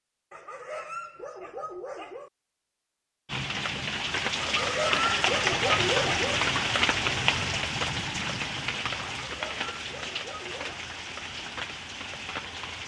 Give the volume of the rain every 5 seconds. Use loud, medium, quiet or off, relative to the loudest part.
loud, loud, medium.